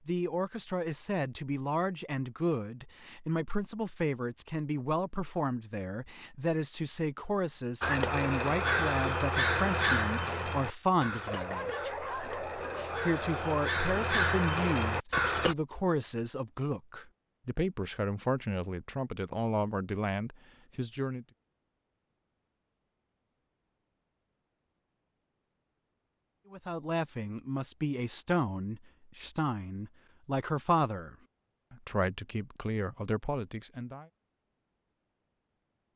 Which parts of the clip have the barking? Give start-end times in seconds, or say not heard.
11.2-13.7.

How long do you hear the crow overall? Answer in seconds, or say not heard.
8 s.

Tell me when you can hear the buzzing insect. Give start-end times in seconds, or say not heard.
not heard.